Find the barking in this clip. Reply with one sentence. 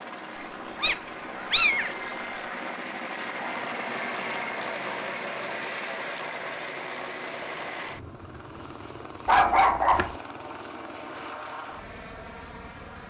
You can hear the barking from 0.8 to 2.4 s and from 9.2 to 10.2 s.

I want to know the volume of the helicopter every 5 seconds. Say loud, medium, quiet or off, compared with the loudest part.
loud, loud, medium.